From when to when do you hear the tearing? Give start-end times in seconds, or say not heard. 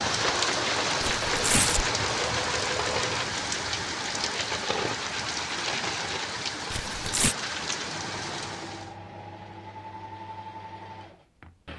1.0-1.9, 6.7-7.3.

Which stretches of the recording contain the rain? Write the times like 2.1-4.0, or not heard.
0.0-8.9.